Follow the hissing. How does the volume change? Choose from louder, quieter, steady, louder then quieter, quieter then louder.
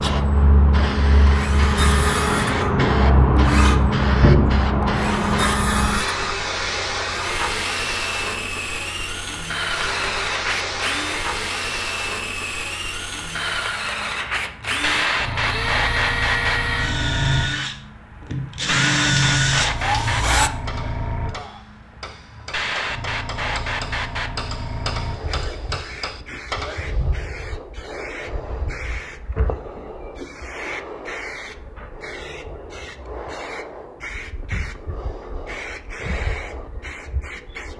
quieter.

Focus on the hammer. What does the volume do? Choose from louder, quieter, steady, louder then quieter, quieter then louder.
louder.